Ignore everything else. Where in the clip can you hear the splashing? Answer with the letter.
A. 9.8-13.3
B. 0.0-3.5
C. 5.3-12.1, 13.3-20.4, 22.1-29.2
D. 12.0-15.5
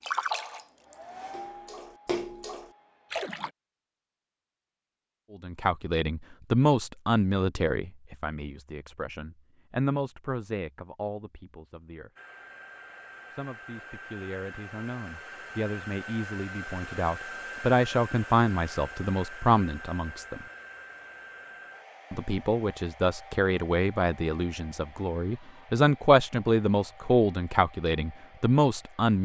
B.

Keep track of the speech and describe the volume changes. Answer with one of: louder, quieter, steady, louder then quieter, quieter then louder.
quieter then louder.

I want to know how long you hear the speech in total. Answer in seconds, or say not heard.
21 s.